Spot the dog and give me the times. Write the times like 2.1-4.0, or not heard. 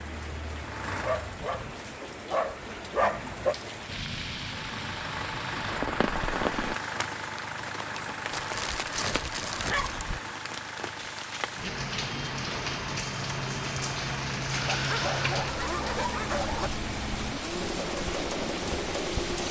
1.0-3.5, 8.3-10.2, 14.7-16.7.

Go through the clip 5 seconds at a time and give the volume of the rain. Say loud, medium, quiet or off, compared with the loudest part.
medium, loud, loud, loud.